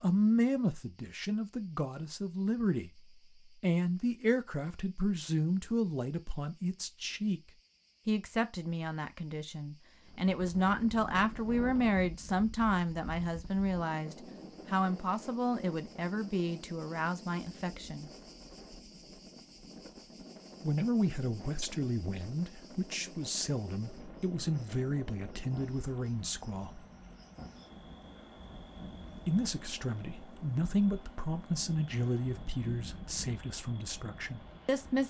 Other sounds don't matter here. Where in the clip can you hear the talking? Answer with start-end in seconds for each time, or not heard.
0.0-7.4, 8.1-18.1, 20.6-26.9, 29.2-35.0.